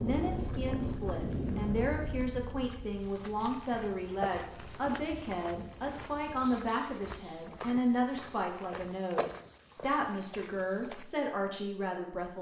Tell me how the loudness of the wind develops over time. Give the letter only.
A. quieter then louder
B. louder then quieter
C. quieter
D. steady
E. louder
C.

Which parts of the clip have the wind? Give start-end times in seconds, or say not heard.
0.0-6.5.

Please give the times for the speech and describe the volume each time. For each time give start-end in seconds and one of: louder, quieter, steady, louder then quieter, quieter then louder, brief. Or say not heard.
0.0-12.3 steady.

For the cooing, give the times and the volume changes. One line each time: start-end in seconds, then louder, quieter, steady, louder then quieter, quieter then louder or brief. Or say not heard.
not heard.